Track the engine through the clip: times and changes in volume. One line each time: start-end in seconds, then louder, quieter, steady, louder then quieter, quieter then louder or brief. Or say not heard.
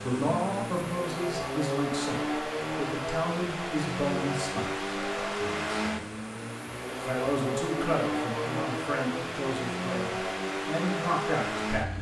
0.0-11.9 steady.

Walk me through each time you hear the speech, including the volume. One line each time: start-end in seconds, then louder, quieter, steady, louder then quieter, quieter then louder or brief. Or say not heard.
0.0-6.0 quieter
7.0-11.9 quieter then louder.